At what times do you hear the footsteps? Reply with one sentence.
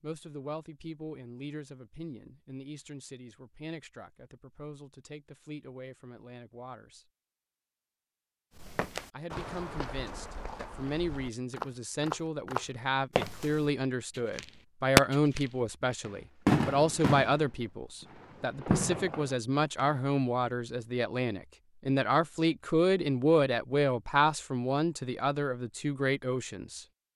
The footsteps can be heard from 8.6 to 13.7 s.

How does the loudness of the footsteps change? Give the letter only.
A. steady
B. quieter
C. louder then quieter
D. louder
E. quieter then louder
E.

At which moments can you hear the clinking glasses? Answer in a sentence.
The clinking glasses can't be heard in this clip.